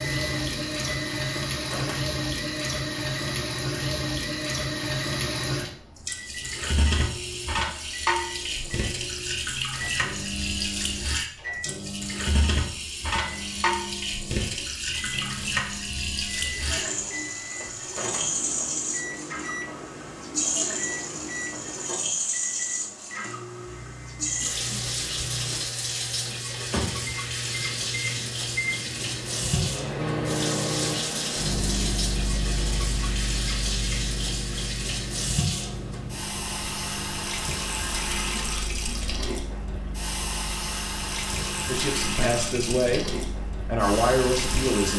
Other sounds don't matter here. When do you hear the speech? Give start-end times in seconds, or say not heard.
41.6-44.9.